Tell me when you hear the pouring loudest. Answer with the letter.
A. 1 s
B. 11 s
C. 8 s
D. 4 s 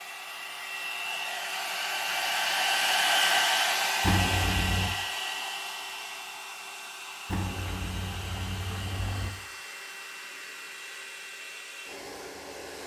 D.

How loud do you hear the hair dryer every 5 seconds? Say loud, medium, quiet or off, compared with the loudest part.
loud, medium, quiet.